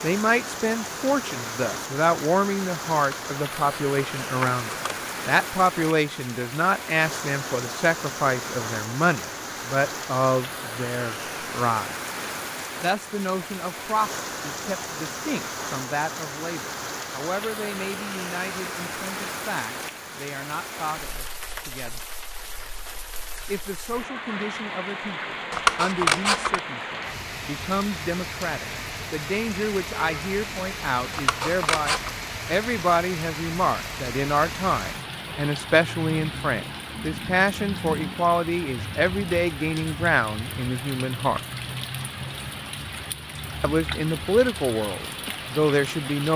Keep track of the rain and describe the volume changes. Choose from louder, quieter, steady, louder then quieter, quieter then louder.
steady.